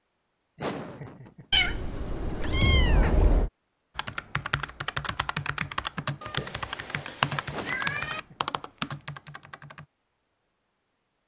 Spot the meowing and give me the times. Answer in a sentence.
You can hear the meowing from 1.5 to 3.5 s and from 6.2 to 8.2 s.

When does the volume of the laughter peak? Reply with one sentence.
The loudest moment of the laughter is at 1 second.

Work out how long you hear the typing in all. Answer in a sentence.
The typing can be heard for 6 seconds in total.